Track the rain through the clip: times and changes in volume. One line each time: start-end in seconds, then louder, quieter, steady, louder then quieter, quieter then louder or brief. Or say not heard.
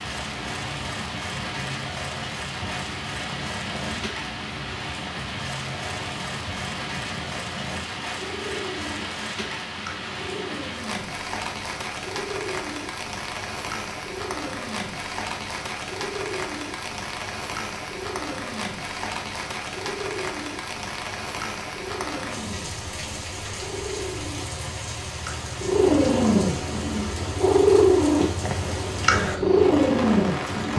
0.0-30.7 steady.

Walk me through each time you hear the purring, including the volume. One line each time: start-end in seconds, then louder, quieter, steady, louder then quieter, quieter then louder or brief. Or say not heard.
0.0-30.7 louder.